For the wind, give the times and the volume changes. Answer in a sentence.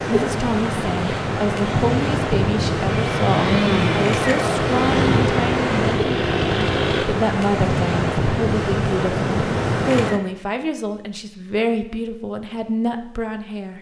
You can hear the wind from 0.0 to 10.2 s, at a steady volume.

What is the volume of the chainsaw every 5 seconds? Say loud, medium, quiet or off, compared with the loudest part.
loud, loud, off.